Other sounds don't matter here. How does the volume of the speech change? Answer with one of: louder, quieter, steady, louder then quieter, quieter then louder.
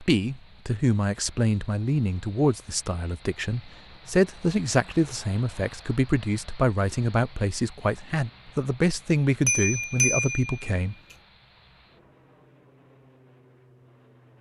steady.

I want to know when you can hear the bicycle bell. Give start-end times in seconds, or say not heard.
9.4-10.6.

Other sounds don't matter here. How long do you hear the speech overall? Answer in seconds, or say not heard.
11 s.